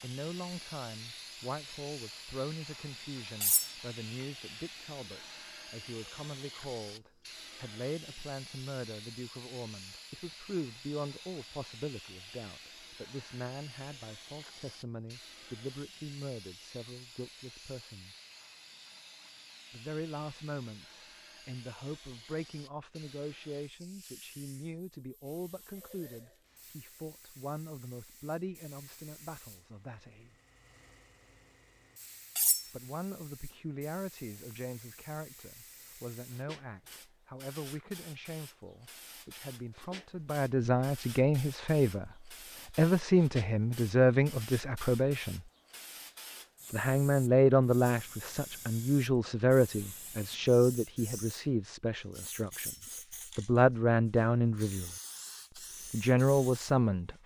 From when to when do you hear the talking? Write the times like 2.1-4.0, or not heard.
0.0-18.1, 19.7-30.4, 32.7-42.1, 42.8-45.4, 46.7-54.9, 55.9-57.1.